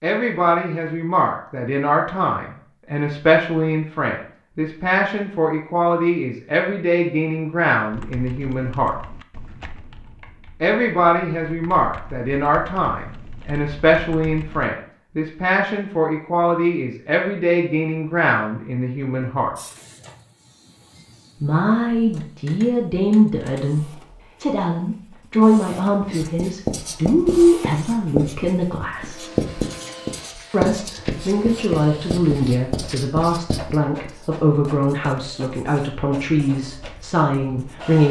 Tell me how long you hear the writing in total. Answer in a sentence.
The writing can be heard for 12 seconds in total.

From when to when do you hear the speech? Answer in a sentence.
The speech can be heard from 0.0 to 8.9 s, from 10.6 to 19.6 s, from 21.4 to 29.3 s and from 30.5 to 38.0 s.